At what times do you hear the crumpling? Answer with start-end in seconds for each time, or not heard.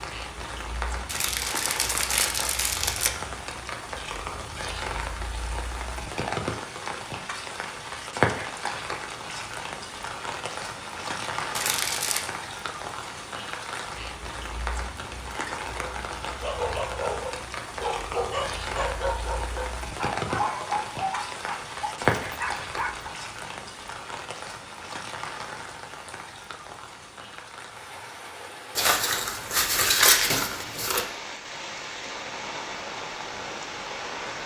1.1-3.1, 11.6-12.2, 28.8-31.1.